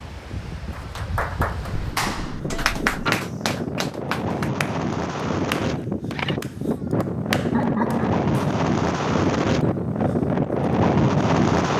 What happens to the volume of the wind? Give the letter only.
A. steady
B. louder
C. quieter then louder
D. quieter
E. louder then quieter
B.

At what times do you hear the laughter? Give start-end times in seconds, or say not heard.
7.5-8.2.